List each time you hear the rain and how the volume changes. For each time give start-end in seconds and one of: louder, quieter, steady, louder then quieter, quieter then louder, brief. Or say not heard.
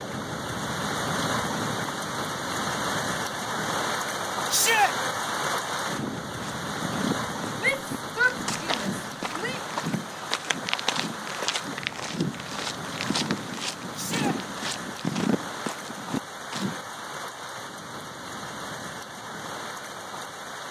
0.0-20.6 quieter.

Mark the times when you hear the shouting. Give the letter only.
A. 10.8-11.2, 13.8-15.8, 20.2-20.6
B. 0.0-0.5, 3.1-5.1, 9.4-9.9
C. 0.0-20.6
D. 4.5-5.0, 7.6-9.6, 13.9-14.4
D.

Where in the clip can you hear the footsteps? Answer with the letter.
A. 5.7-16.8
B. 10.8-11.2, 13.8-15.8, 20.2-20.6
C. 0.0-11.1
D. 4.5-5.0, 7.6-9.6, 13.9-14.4
A.